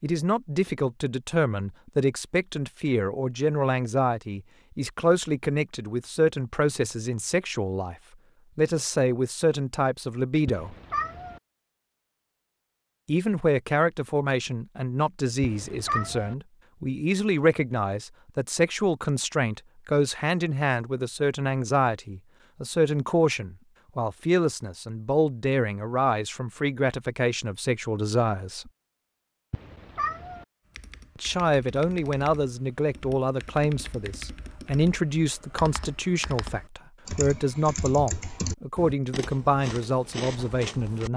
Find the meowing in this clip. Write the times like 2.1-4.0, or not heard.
10.4-11.4, 15.4-16.4, 29.5-30.4.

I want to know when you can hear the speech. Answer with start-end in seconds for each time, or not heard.
0.0-8.0, 8.6-10.8, 13.1-28.7, 31.1-41.1.